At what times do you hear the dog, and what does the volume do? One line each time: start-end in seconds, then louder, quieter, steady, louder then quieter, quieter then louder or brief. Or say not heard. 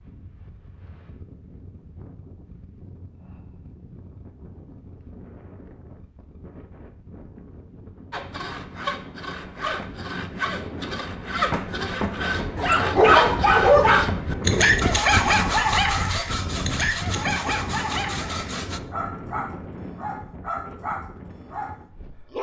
12.6-22.3 quieter.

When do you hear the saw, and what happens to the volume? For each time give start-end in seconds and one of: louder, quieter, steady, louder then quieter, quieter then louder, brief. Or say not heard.
8.1-18.8 louder then quieter.